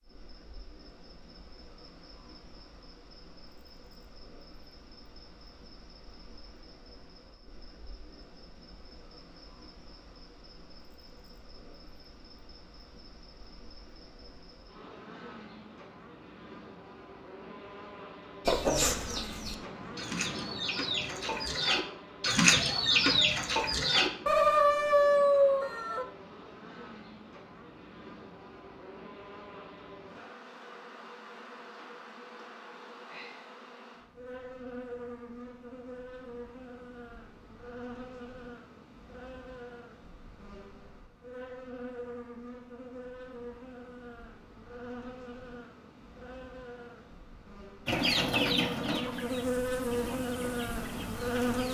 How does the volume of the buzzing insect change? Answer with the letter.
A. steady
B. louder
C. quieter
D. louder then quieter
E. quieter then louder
B.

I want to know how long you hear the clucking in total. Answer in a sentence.
You can hear the clucking for 11 seconds altogether.